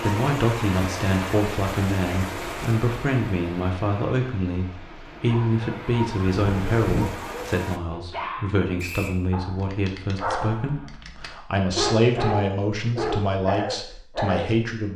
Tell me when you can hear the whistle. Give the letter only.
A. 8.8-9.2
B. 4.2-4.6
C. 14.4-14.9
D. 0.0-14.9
A.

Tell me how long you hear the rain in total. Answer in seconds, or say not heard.
8 s.